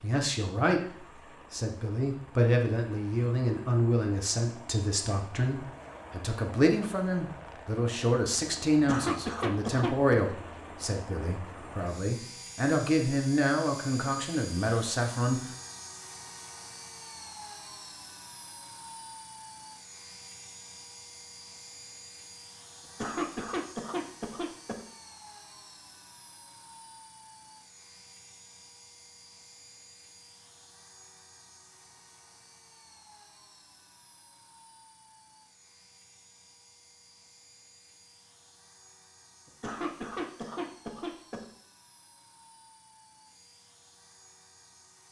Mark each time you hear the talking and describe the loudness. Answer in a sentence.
You can hear the talking from 0.0 to 15.4 s, at a steady volume.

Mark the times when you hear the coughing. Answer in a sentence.
You can hear the coughing from 8.7 to 10.2 s, from 22.8 to 24.9 s and from 39.5 to 41.5 s.